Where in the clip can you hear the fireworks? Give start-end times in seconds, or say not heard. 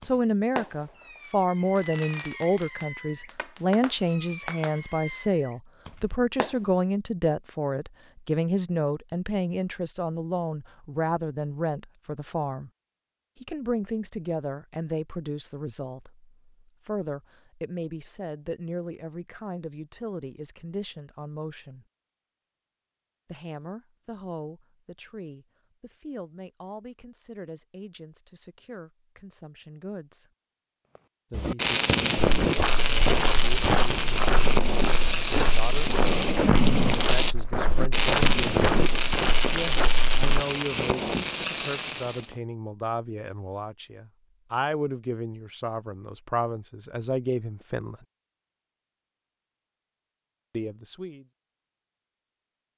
0.0-6.7, 30.9-42.4.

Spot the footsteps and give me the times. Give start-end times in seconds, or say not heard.
32.4-40.4.